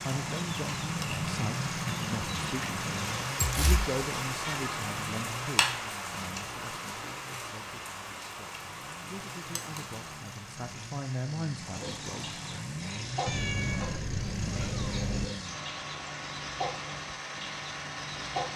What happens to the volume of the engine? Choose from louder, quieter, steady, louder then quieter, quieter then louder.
quieter then louder.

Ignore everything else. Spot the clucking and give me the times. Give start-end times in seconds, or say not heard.
0.0-3.2, 11.7-18.5.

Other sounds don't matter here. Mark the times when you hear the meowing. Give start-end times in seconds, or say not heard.
3.4-4.7, 13.2-15.2.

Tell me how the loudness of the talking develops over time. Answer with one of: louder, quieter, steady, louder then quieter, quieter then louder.
quieter then louder.